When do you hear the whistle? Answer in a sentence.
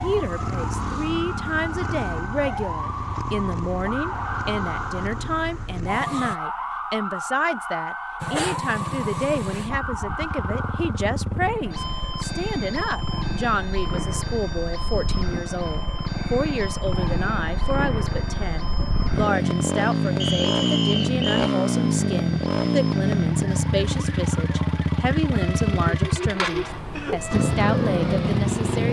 You can hear the whistle from 20.2 to 21.5 s.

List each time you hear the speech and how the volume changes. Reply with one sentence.
The speech can be heard from 0.0 to 28.8 s, at a steady volume.